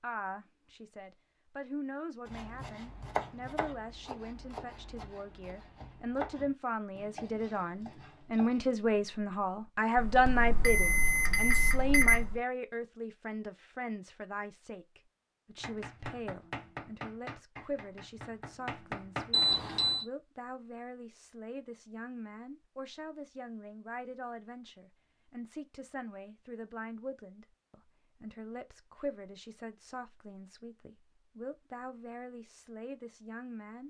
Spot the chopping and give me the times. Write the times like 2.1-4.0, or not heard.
2.2-8.8, 15.6-19.4.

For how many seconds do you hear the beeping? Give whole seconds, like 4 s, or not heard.
3 s.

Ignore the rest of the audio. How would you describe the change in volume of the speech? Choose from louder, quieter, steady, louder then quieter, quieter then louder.
louder then quieter.